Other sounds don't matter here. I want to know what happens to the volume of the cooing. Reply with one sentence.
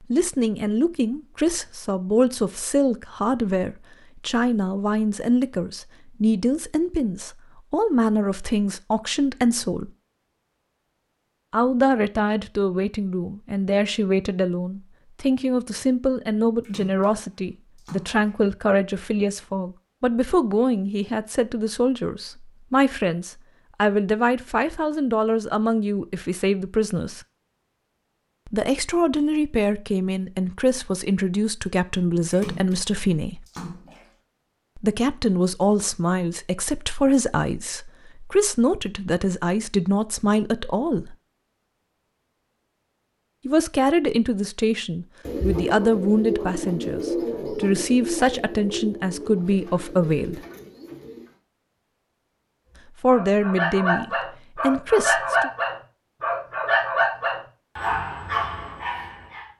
The loudness of the cooing goes down.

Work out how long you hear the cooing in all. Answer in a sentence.
You can hear the cooing for 6 seconds altogether.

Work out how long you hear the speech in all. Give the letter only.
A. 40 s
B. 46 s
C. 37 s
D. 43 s
B.